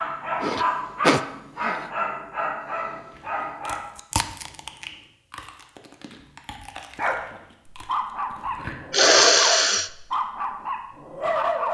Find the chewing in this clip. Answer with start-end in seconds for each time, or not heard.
3.1-8.8.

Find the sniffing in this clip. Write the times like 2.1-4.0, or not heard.
0.4-1.8, 8.9-9.9.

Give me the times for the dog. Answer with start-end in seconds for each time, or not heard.
0.0-3.8, 7.0-11.6.